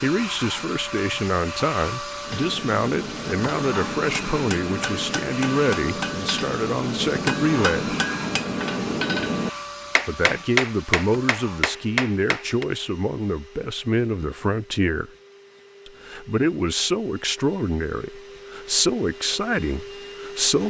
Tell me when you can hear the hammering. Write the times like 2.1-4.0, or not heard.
2.2-12.7.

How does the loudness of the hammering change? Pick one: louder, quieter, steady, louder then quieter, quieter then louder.
louder.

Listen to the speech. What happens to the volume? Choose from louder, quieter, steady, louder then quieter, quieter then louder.
steady.